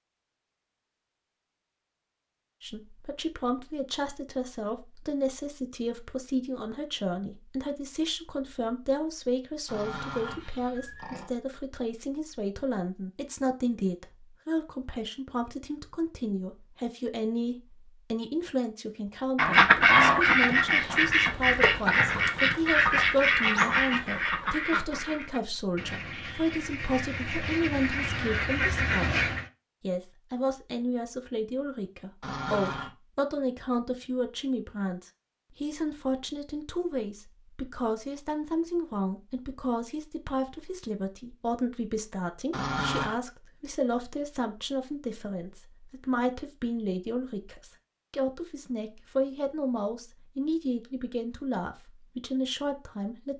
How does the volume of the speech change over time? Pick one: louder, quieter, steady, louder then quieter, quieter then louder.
steady.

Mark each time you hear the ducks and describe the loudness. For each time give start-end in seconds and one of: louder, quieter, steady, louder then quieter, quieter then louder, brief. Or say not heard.
19.4-29.4 quieter then louder.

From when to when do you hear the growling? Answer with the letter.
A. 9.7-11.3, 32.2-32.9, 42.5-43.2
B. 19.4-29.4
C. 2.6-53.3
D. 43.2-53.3
A.